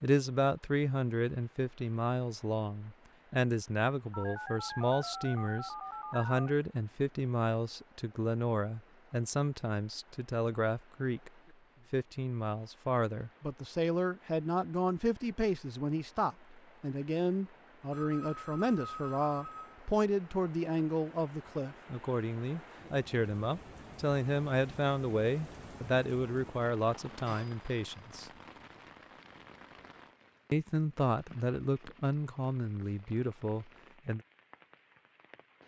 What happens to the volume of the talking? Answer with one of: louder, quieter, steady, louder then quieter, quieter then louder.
steady.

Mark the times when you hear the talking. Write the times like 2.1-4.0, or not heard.
0.0-11.3, 11.9-28.3, 30.5-34.2.